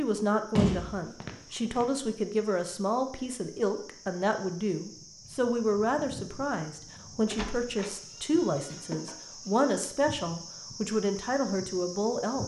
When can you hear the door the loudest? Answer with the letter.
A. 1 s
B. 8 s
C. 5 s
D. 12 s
A.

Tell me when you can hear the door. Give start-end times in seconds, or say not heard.
0.6-1.9, 7.3-8.0.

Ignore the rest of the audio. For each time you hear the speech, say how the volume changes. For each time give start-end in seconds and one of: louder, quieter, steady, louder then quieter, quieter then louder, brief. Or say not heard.
0.0-12.4 steady.